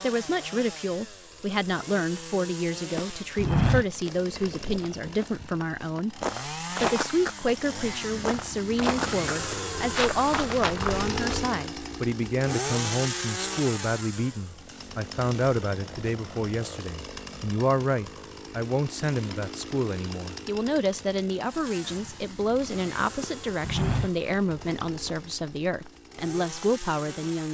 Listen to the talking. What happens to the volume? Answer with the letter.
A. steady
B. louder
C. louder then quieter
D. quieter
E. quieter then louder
A.